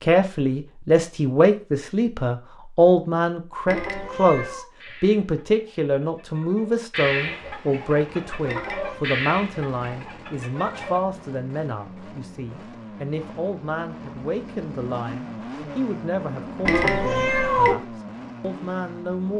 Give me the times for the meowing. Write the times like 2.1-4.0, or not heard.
3.6-4.7, 8.4-9.1, 16.6-17.8.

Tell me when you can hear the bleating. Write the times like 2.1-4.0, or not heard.
not heard.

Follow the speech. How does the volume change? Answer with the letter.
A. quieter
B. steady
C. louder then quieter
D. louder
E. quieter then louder
A.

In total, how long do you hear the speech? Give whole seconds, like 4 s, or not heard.
19 s.